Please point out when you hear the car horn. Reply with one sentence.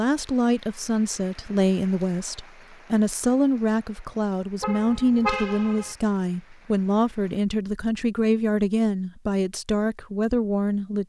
You can hear the car horn from 4.6 to 6.0 s.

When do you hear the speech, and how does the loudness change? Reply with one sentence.
You can hear the speech from 0.0 to 11.0 s, at a steady volume.